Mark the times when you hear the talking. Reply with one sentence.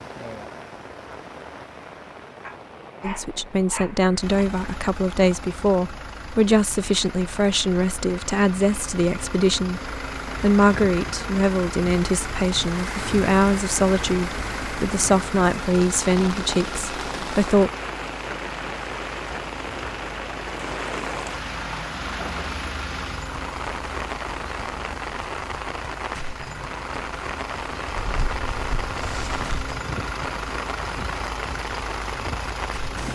The talking can be heard from 3.0 to 17.7 s.